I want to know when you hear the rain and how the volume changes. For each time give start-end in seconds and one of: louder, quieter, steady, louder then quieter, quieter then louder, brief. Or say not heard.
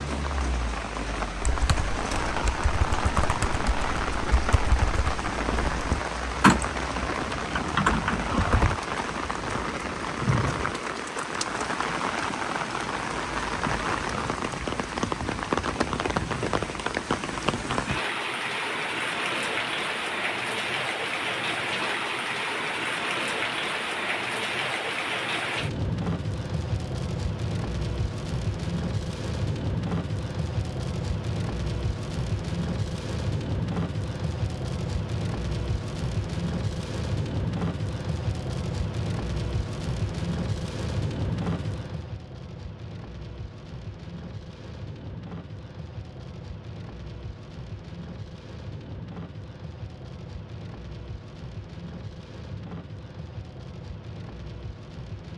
0.0-55.3 quieter.